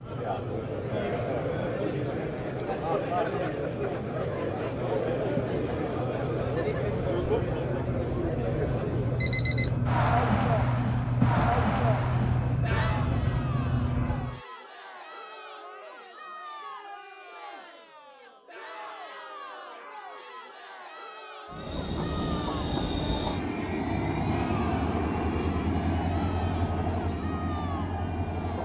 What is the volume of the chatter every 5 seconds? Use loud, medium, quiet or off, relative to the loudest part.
loud, loud, loud, quiet, quiet, quiet.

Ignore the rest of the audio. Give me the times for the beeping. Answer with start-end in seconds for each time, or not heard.
9.2-9.8.